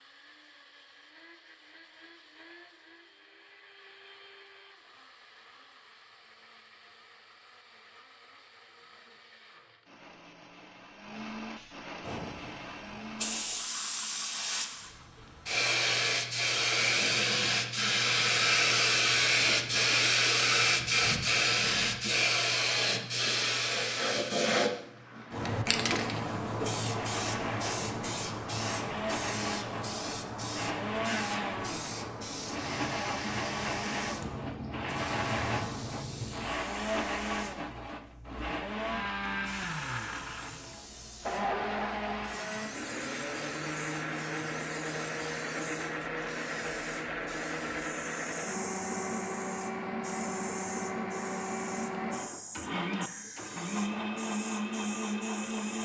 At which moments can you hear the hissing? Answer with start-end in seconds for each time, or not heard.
12.0-55.7.